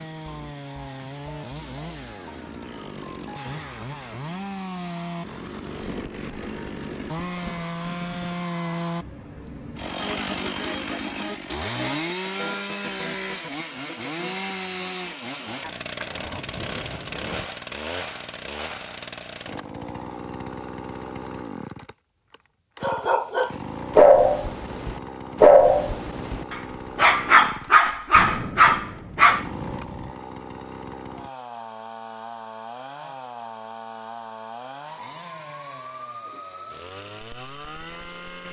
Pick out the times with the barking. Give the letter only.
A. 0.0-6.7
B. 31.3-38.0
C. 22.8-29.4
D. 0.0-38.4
C.